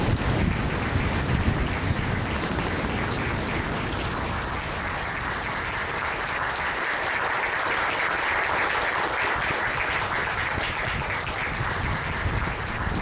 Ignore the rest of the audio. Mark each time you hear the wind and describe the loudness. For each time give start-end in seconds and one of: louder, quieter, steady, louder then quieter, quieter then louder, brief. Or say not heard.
0.0-12.9 quieter then louder.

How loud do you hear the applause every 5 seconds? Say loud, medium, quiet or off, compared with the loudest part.
medium, loud, loud.